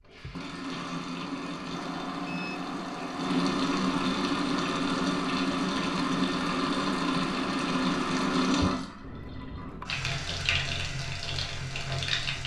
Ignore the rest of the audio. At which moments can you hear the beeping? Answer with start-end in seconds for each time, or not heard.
1.8-3.3, 9.0-9.8.